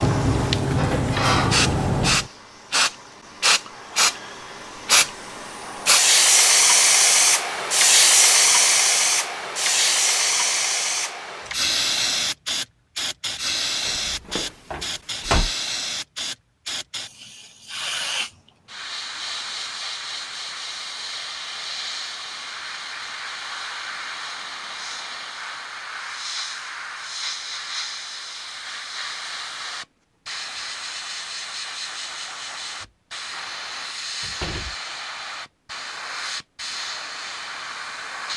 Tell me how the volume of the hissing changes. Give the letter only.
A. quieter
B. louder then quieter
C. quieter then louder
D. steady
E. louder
A.